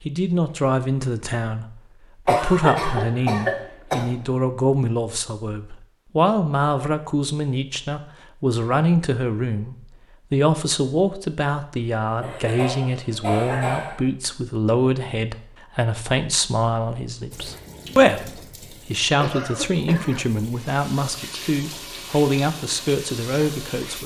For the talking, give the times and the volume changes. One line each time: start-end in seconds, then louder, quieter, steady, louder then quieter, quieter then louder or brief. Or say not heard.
0.0-24.0 steady.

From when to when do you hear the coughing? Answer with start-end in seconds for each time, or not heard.
2.2-4.1, 12.2-14.1, 19.1-20.2.